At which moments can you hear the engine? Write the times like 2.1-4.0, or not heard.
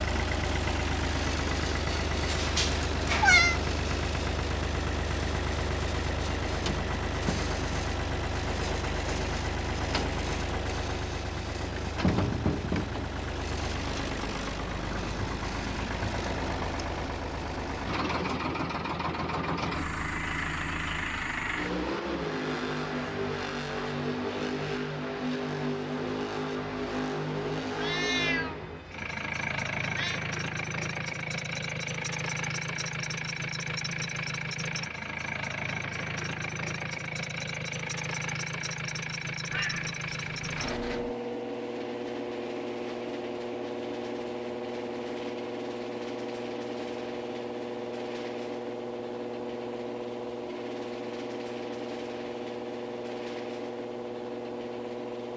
0.0-55.3.